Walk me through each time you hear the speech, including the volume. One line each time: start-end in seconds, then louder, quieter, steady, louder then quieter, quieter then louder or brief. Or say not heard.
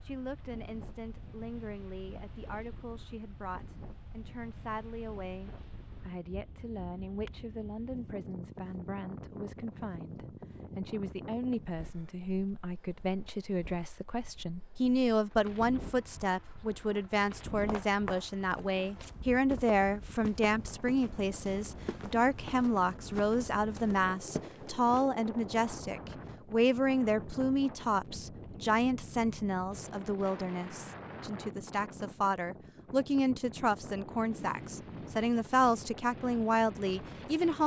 0.0-37.6 louder.